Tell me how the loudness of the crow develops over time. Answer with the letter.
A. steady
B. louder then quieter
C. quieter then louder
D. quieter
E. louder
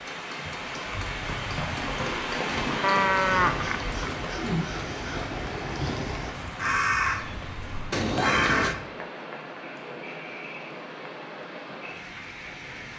E.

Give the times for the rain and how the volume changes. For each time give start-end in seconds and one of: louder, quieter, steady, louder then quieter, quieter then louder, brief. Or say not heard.
0.0-12.9 quieter.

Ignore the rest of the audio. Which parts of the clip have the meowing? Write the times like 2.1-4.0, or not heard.
2.5-4.2, 7.9-8.8.